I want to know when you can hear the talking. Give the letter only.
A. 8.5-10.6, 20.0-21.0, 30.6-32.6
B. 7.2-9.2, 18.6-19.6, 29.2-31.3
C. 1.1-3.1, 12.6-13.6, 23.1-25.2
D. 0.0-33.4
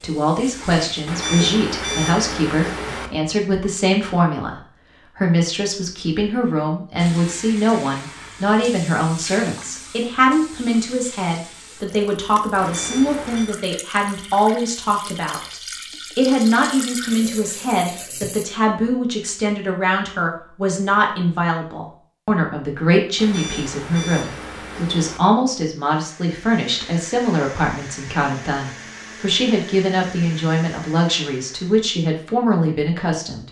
D.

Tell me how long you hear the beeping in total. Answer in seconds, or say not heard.
5 s.